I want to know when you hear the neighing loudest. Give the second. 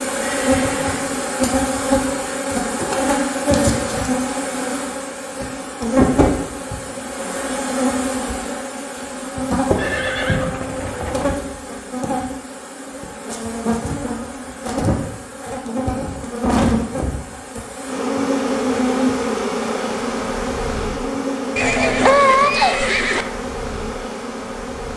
22 s.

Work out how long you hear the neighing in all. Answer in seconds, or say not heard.
4 s.